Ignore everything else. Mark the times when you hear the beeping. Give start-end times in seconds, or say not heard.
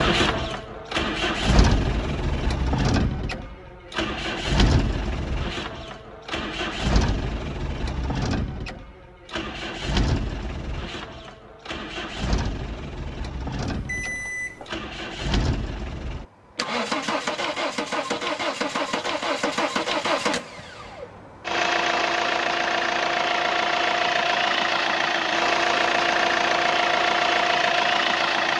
13.7-14.8.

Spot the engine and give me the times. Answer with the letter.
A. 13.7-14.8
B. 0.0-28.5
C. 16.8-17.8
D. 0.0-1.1
B.